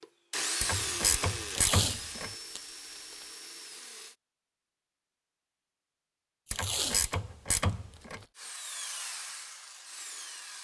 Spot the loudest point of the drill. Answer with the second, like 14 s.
1 s.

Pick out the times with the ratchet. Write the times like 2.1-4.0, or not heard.
0.6-2.3, 6.5-8.2.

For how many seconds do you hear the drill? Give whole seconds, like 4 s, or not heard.
6 s.